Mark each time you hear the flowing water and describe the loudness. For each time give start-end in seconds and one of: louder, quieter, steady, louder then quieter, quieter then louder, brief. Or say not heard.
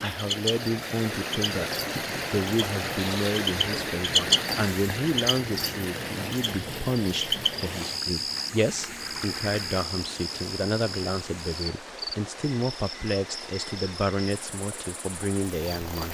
0.0-16.0 quieter.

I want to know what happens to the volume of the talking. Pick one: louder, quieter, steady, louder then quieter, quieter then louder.
steady.